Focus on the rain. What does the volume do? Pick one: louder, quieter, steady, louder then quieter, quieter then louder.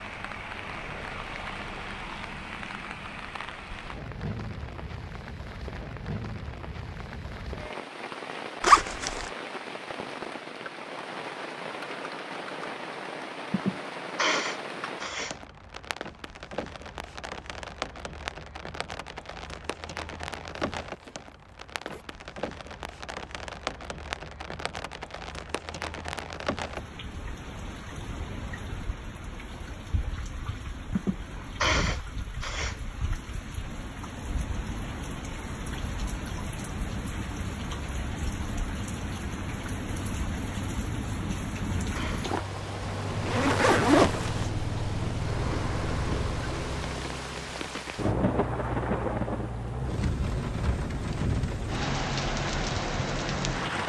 louder.